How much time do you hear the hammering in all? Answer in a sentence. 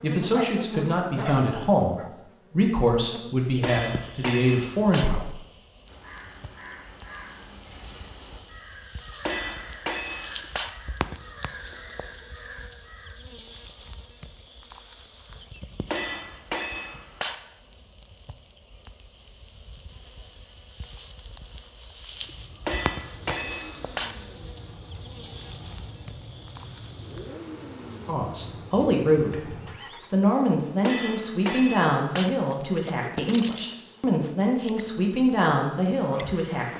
The hammering can be heard for 7 seconds in total.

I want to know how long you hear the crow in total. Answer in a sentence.
The crow can be heard for 7 seconds in total.